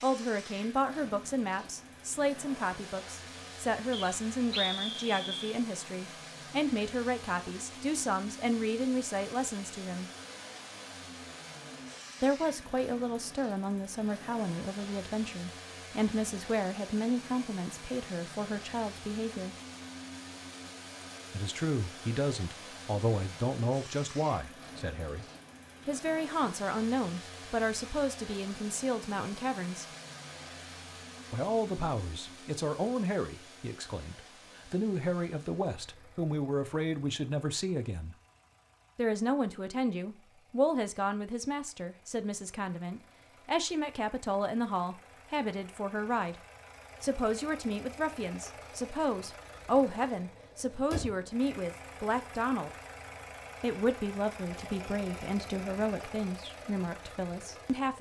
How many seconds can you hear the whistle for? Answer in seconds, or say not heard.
2 s.